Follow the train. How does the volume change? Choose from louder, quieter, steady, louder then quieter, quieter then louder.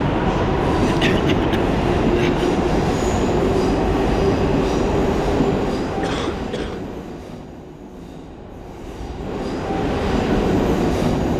quieter then louder.